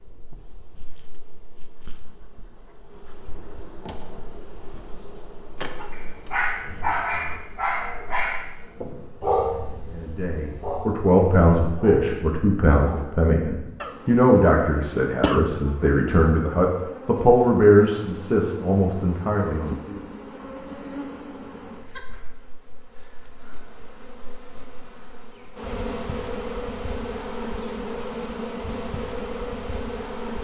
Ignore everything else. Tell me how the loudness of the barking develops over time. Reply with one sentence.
The volume of the barking goes down.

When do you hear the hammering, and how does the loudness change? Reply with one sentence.
The hammering can't be heard in this clip.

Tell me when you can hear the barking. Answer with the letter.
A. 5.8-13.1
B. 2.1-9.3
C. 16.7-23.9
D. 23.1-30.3
A.